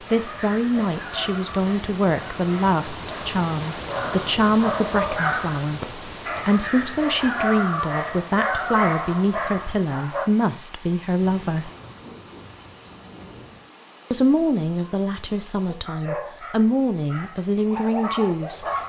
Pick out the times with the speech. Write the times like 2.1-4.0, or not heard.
0.1-11.7, 14.1-18.6.